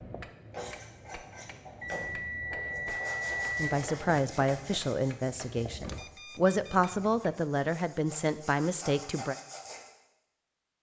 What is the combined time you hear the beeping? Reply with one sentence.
The beeping can be heard for 3 seconds in total.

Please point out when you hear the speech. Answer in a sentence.
The speech can be heard from 3.5 to 9.3 s.